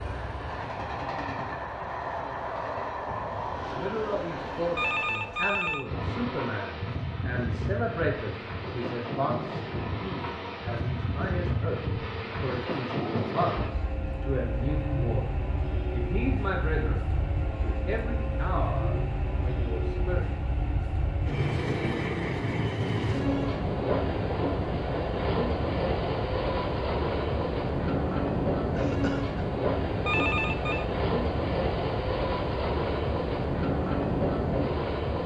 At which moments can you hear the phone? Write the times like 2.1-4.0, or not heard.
4.8-5.8, 30.1-30.9.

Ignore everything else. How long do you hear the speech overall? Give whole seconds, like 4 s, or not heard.
17 s.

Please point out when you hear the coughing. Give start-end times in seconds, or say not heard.
28.8-29.5.